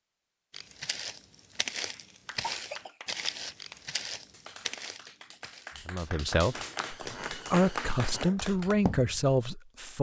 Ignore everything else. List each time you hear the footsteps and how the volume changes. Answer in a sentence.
The footsteps can be heard from 0.5 to 9.2 s, getting quieter then louder.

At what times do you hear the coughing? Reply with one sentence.
You can hear the coughing from 2.4 to 3.0 s.